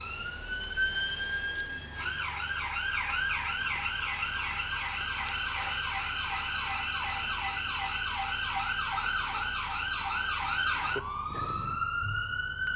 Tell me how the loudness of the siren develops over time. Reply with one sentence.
The loudness of the siren stays about the same.